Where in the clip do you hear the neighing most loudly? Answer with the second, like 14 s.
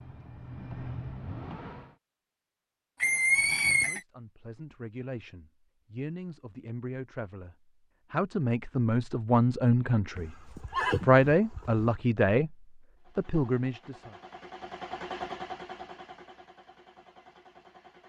3 s.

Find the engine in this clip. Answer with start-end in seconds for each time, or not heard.
0.0-1.9, 12.9-18.0.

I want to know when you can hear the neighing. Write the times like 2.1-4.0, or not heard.
3.0-4.0, 10.2-11.9.